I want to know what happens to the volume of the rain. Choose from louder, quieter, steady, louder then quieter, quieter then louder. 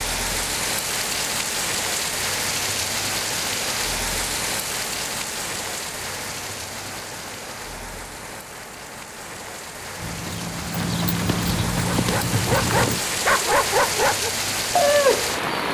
quieter then louder.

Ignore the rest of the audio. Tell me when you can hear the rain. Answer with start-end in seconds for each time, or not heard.
0.0-15.6.